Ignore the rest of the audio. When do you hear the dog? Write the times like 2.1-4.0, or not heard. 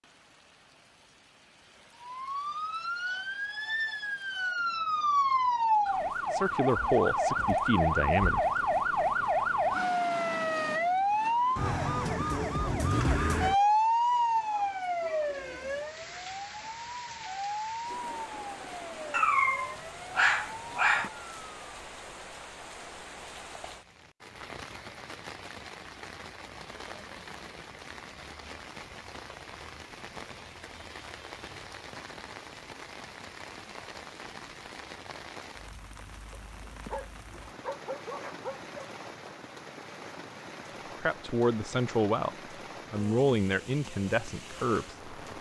19.1-21.1, 36.3-38.6.